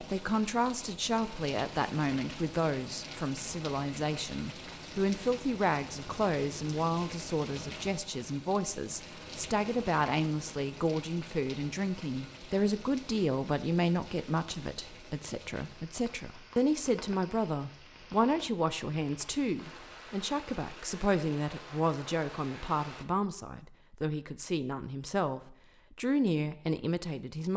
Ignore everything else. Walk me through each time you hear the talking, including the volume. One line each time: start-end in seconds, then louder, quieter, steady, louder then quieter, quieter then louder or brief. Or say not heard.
0.0-27.5 steady.